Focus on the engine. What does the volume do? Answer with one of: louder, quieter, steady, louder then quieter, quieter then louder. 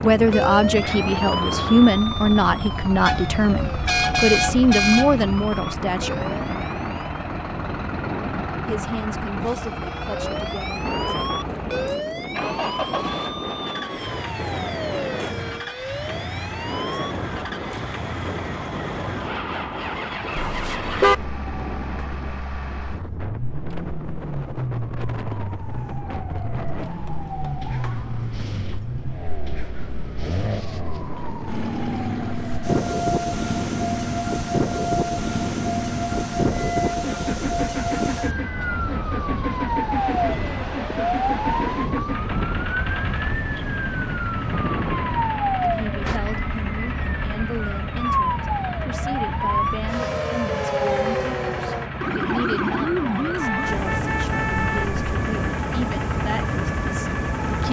steady.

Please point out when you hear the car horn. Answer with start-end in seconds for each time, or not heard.
3.0-5.3, 20.4-21.1, 53.4-55.0.